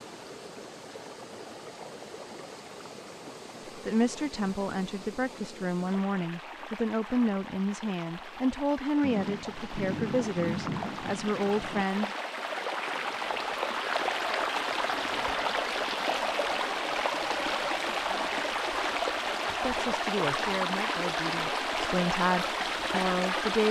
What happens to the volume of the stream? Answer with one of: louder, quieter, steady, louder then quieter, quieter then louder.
louder.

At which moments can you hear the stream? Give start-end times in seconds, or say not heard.
0.0-23.6.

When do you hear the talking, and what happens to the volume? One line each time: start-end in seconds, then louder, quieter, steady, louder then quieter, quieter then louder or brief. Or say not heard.
3.6-12.1 steady
19.6-23.6 quieter then louder.